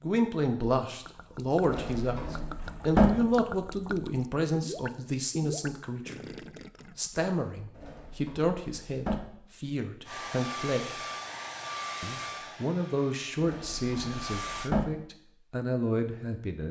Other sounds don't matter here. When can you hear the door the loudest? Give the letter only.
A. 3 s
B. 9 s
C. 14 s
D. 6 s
A.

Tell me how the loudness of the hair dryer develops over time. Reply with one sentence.
The loudness of the hair dryer goes down, then up.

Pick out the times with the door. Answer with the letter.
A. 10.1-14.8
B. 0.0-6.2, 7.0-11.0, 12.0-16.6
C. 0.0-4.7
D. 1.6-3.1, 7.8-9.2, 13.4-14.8
D.